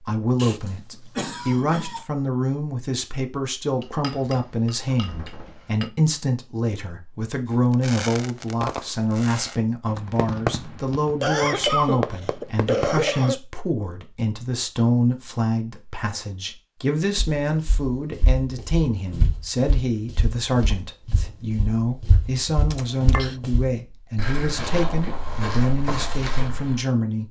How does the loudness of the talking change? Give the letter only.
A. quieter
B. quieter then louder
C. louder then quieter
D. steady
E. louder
D.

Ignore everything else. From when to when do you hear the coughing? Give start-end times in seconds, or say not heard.
0.3-2.0, 11.2-13.3, 22.7-23.4.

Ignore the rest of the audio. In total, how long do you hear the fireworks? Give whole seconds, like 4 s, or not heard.
5 s.